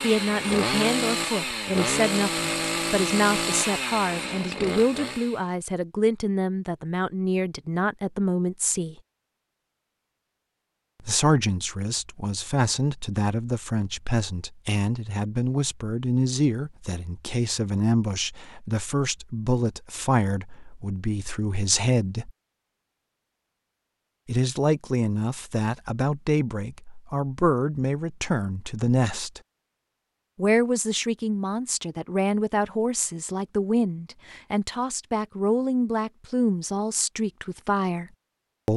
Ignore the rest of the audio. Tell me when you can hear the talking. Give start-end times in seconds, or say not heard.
0.0-8.9, 11.0-22.3, 24.2-29.4, 30.4-38.7.